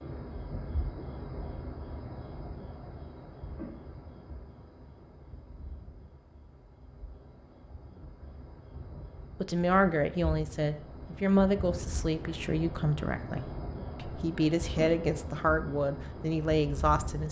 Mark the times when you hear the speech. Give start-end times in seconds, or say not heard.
9.4-17.2.